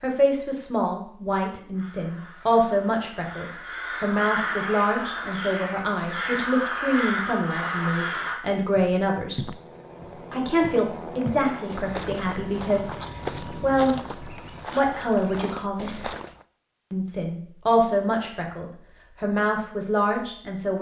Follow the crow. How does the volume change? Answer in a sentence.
The volume of the crow goes up.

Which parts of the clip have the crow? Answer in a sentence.
You can hear the crow from 1.7 to 8.4 s.